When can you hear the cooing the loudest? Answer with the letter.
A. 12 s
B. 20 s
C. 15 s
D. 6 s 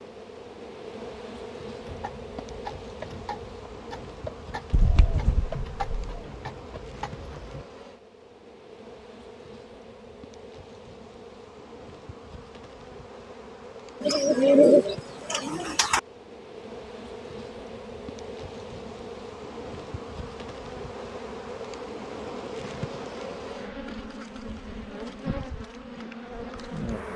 C.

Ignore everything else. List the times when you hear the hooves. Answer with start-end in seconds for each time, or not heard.
1.8-7.7.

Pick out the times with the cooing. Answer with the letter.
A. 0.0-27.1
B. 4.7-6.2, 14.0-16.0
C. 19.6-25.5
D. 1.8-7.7
B.